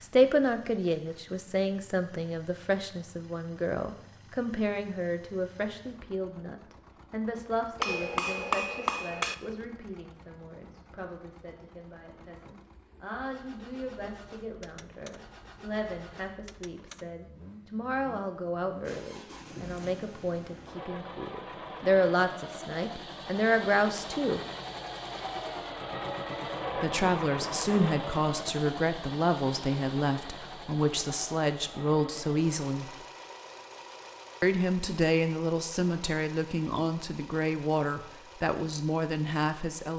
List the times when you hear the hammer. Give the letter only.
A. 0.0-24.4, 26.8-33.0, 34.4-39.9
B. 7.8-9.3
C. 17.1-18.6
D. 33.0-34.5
B.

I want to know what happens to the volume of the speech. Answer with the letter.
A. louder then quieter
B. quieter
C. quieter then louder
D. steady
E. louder
C.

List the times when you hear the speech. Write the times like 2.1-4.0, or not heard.
0.0-24.4, 26.8-33.0, 34.4-39.9.